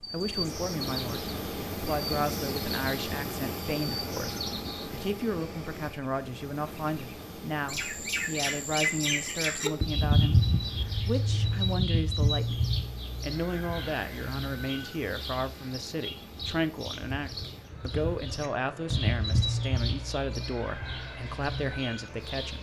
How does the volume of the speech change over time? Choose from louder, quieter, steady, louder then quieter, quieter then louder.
steady.